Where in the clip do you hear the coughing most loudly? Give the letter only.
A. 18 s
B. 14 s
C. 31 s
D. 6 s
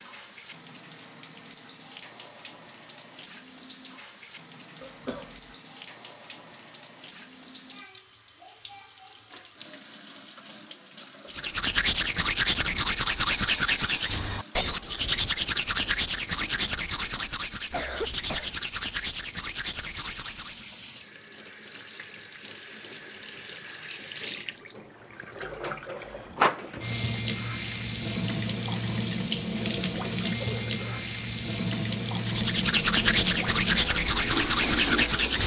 A.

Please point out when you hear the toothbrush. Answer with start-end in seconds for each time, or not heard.
11.2-20.6, 32.2-35.4.